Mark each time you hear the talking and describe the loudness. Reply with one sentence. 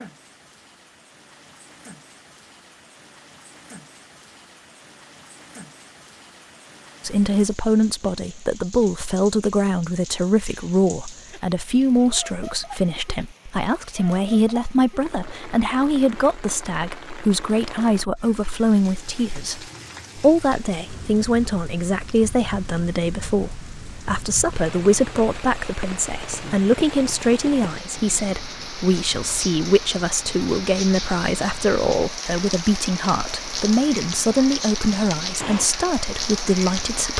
You can hear the talking from 7.0 to 37.1 s, at a steady volume.